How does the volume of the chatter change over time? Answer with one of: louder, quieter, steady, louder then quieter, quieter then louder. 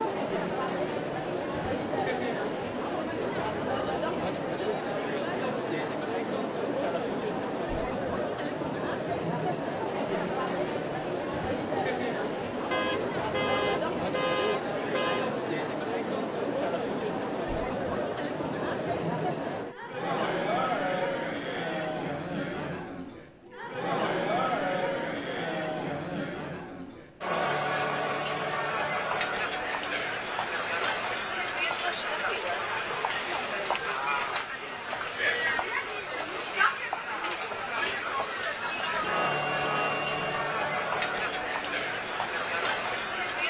steady.